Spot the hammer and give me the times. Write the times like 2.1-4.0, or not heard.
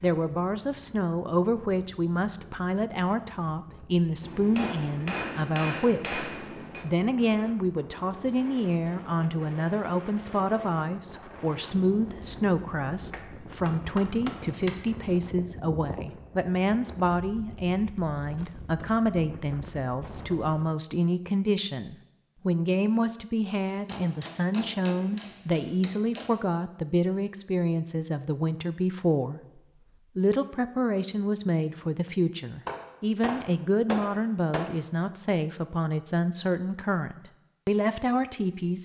4.2-6.8, 13.1-14.8, 23.6-26.4, 32.6-34.6.